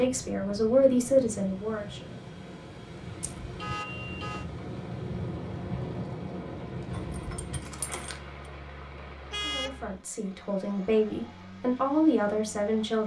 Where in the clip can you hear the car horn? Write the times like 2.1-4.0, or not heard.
3.5-4.5, 9.3-9.9.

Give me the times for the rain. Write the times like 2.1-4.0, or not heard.
0.0-9.8.